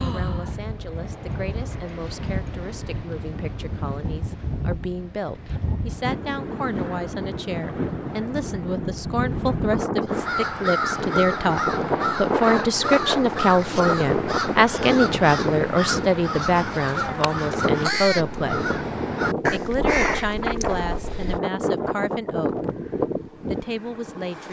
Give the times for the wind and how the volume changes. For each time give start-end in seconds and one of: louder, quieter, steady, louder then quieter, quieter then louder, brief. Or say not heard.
0.0-24.4 louder.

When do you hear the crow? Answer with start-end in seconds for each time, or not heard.
10.1-21.4.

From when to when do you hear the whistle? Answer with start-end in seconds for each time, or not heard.
not heard.